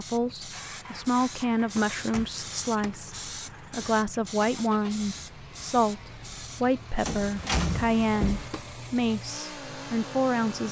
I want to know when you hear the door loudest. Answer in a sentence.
The loudest moment of the door is at 8 seconds.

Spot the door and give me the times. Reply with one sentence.
You can hear the door from 1.9 to 3.0 s and from 7.0 to 8.5 s.